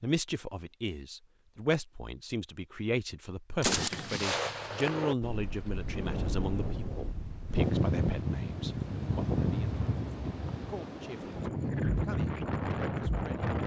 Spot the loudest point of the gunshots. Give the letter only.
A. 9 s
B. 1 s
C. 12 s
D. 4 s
D.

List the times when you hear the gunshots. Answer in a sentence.
The gunshots can be heard from 3.6 to 5.2 s.